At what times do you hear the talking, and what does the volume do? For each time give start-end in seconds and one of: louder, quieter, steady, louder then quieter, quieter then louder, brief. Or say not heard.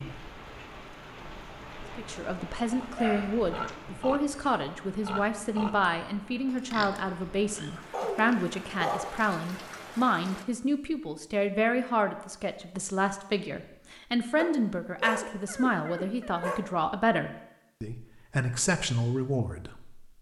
1.9-20.1 steady.